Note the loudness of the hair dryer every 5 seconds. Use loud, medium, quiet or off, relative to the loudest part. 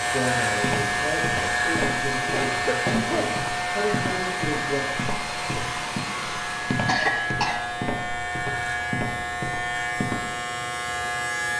loud, loud, off.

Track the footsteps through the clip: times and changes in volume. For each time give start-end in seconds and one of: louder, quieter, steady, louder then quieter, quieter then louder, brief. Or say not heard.
0.6-10.3 steady.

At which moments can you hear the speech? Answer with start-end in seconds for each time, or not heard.
0.0-4.8.